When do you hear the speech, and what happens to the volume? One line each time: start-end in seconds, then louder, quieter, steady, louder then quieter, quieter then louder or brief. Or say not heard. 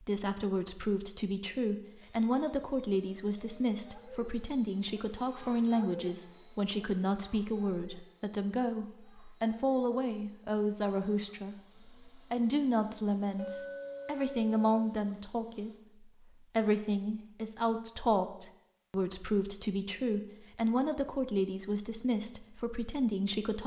0.0-23.6 steady.